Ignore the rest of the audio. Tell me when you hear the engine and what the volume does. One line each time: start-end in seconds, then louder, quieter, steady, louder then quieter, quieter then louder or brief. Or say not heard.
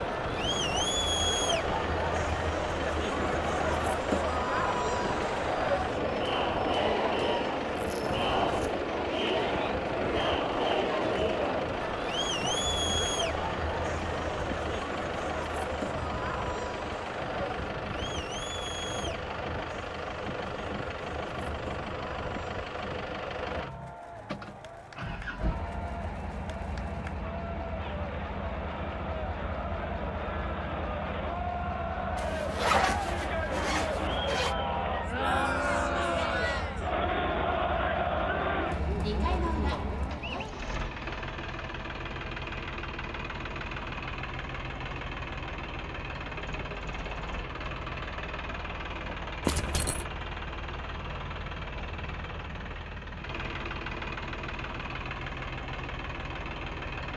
0.0-57.1 steady.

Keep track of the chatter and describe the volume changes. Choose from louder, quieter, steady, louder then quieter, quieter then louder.
quieter then louder.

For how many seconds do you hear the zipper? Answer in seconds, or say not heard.
4 s.